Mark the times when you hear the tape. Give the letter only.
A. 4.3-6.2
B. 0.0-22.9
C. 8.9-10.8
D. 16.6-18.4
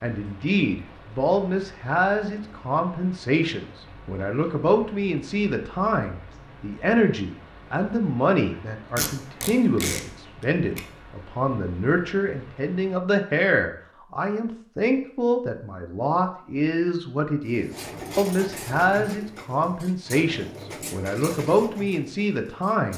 C.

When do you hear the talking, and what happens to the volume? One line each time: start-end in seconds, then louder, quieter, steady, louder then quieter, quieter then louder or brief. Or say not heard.
0.0-22.9 steady.